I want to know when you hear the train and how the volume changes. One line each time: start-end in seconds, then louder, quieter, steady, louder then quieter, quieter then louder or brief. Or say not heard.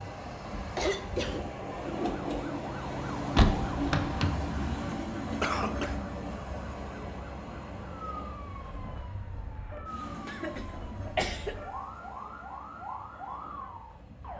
0.0-14.3 quieter.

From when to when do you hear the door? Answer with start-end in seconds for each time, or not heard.
3.4-4.6.